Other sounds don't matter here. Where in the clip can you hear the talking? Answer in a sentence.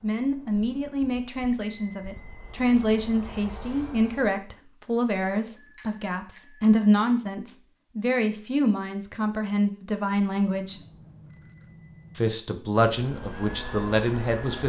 The talking can be heard from 0.0 to 10.8 s and from 12.2 to 14.6 s.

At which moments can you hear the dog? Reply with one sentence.
You can't hear the dog here.